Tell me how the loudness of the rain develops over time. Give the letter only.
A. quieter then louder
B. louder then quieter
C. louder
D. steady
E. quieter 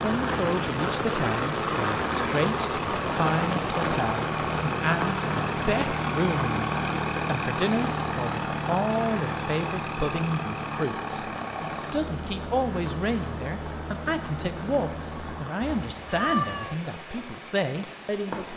E.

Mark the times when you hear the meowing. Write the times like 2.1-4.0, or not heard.
15.6-16.8.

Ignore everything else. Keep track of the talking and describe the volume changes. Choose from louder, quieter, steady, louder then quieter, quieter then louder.
steady.